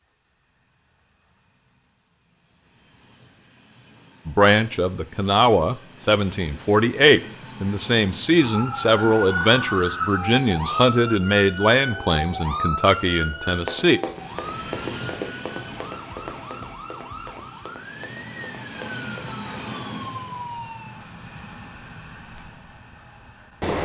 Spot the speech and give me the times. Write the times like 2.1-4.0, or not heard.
4.2-14.0.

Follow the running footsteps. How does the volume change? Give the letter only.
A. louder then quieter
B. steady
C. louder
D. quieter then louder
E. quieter
E.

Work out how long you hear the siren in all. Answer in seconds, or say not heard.
13 s.